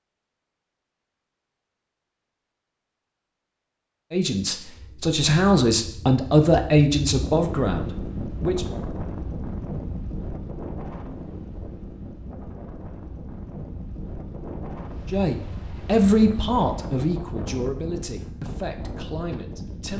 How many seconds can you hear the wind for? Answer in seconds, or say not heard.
15 s.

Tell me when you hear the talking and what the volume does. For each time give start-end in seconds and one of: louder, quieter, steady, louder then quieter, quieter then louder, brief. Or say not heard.
4.1-8.7 louder then quieter
15.1-19.9 quieter.